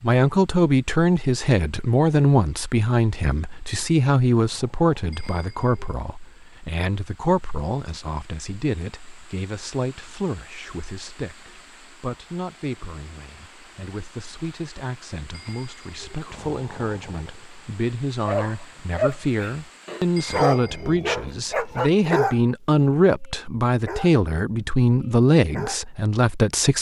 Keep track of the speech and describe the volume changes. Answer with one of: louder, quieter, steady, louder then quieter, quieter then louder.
quieter then louder.